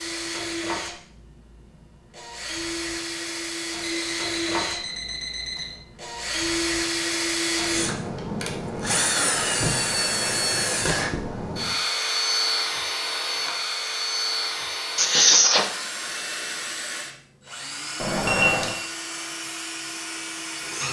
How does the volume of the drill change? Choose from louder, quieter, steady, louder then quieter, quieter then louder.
louder then quieter.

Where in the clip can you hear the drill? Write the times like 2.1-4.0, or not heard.
0.0-20.8.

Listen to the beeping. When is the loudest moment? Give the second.
18 s.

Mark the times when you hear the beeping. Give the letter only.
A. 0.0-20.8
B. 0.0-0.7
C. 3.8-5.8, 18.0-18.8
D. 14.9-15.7
C.